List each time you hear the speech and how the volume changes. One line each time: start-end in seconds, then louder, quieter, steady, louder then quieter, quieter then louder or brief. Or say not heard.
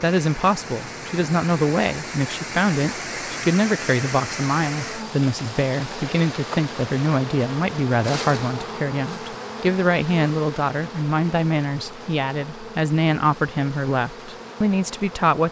0.0-15.4 steady.